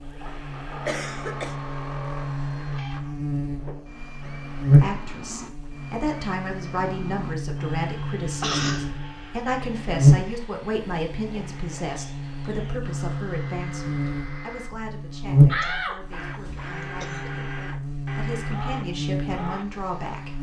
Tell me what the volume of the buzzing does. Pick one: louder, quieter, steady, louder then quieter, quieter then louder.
louder then quieter.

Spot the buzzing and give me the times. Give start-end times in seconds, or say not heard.
0.0-20.3.